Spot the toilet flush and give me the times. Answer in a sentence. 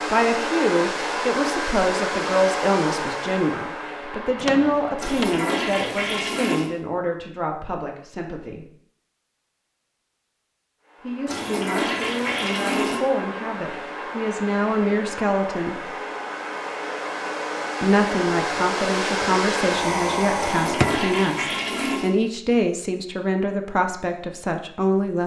The toilet flush can be heard from 5.0 to 6.7 s, from 11.2 to 13.0 s and from 20.4 to 22.1 s.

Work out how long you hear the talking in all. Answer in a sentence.
You can hear the talking for 21 seconds altogether.